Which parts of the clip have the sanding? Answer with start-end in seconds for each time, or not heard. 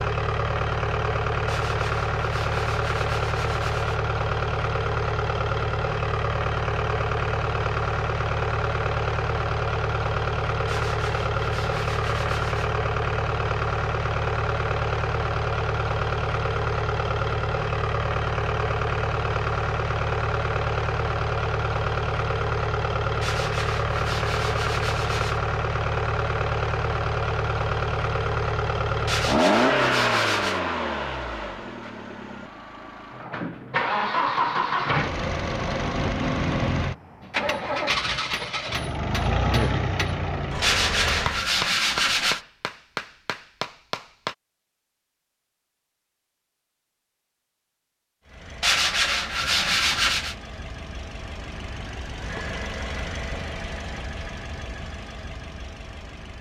1.4-4.0, 10.7-12.8, 23.2-25.4, 29.1-30.6, 40.6-42.4, 48.6-50.4.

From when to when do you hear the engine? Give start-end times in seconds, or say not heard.
0.0-41.5, 48.2-56.3.